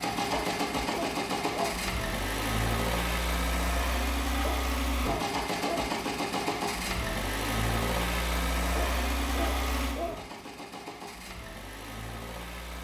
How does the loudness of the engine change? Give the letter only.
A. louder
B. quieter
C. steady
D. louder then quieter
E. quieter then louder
B.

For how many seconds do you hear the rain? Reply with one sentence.
You can't hear the rain here.